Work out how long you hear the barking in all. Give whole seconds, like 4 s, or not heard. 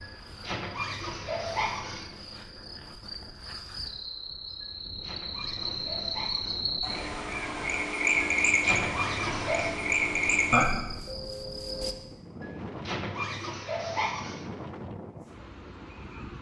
8 s.